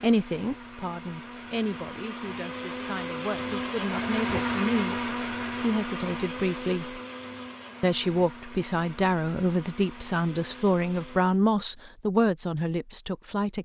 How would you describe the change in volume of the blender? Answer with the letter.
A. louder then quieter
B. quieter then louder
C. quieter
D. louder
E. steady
A.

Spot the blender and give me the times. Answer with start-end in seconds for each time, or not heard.
0.0-11.4.